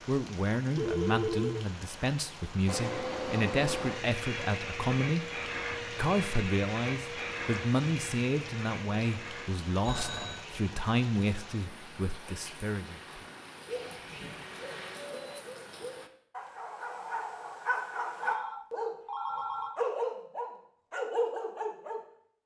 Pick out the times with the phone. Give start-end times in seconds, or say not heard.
0.8-1.7, 9.8-10.4, 18.2-19.8.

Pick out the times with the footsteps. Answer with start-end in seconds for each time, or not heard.
not heard.